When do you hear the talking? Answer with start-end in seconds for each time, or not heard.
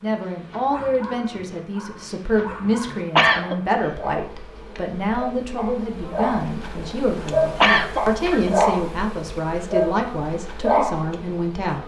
0.0-11.8.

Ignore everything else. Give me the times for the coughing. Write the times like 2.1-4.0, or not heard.
2.9-3.5, 7.6-8.5.